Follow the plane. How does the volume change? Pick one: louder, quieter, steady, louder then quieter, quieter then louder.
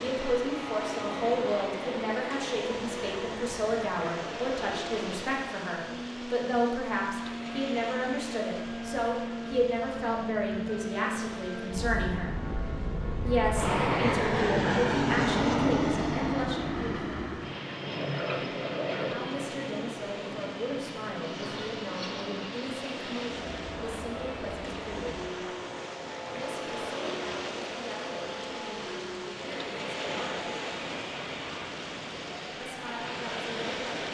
louder then quieter.